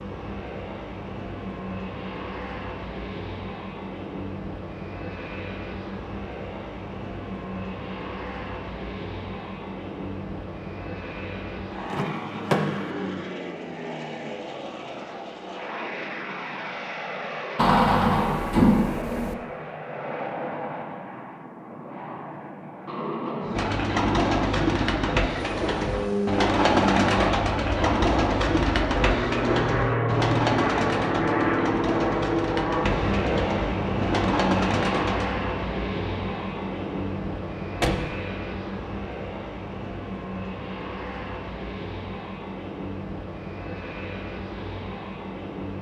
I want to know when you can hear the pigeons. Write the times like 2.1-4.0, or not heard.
23.6-35.4.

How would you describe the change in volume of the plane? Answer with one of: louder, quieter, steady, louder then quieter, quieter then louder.
louder then quieter.